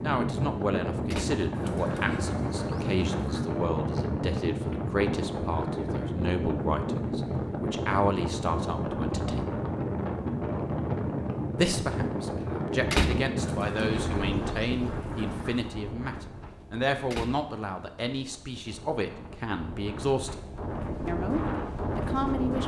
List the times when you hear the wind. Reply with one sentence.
You can hear the wind from 0.0 to 22.6 s.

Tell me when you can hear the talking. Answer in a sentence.
You can hear the talking from 0.0 to 9.6 s, from 11.6 to 20.4 s and from 21.1 to 22.6 s.